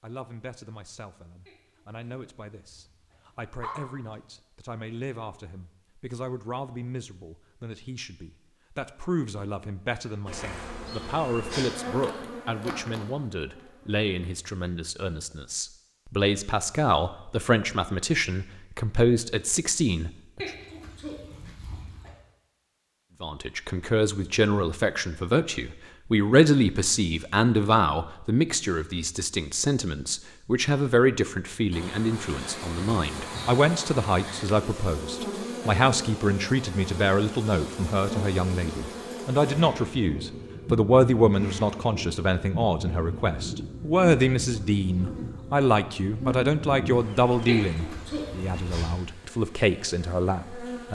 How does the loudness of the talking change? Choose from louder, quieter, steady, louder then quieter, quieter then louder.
louder.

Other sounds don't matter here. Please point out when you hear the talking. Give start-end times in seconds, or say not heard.
0.0-20.4, 23.2-50.8.